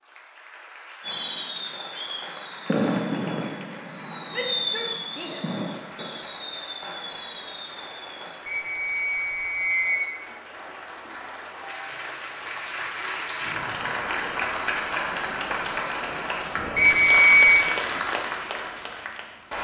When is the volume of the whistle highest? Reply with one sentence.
The volume of the whistle peaks at 17 seconds.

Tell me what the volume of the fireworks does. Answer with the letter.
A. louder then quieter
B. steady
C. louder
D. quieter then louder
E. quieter
A.